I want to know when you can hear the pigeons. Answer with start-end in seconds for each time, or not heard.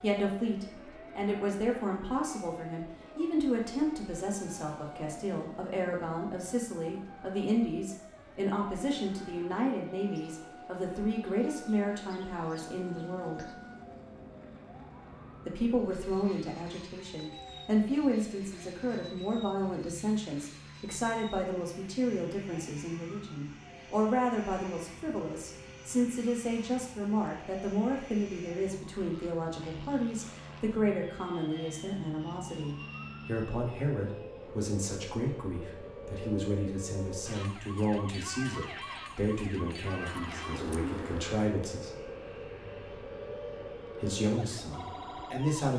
40.0-41.4.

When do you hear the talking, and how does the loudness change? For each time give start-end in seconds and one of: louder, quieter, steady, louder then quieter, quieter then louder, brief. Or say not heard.
0.0-13.4 steady
15.4-42.0 steady
44.0-45.7 brief.